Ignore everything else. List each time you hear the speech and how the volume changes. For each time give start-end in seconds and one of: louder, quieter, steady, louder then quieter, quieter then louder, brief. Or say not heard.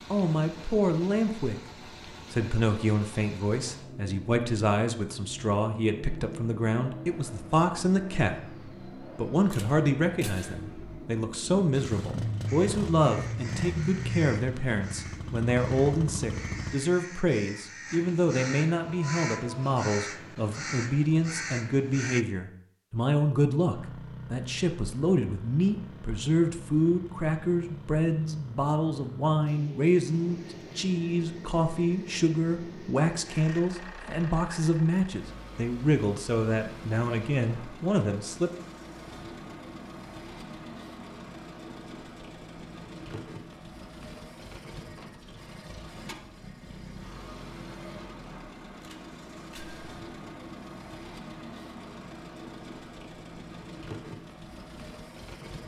0.1-38.5 steady.